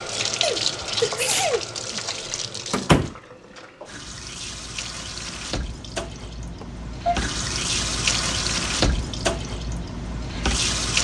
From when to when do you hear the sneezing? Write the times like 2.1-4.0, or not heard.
0.4-2.0, 6.6-7.2.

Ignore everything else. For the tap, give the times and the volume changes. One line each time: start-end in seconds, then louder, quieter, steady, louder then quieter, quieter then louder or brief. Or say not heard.
0.0-10.9 quieter then louder.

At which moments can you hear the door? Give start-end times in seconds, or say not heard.
2.7-3.1.